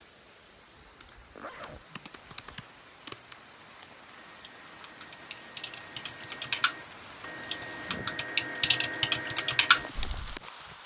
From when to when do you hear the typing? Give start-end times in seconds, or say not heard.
1.0-10.4.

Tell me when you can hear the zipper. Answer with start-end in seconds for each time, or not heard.
1.4-1.9.